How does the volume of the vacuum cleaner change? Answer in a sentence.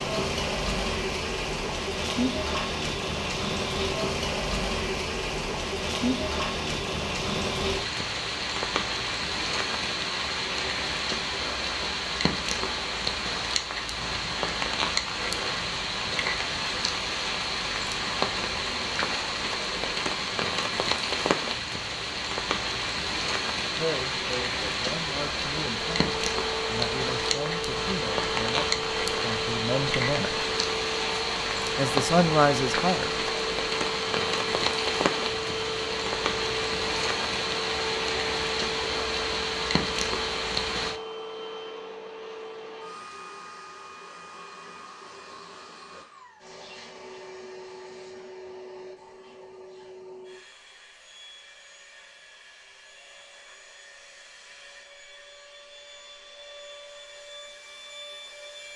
The volume of the vacuum cleaner goes down.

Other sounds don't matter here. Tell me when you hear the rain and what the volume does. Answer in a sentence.
The rain can be heard from 0.0 to 41.0 s, at a steady volume.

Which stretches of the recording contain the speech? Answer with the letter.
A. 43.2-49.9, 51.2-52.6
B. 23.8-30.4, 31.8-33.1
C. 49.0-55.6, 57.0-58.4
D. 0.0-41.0
B.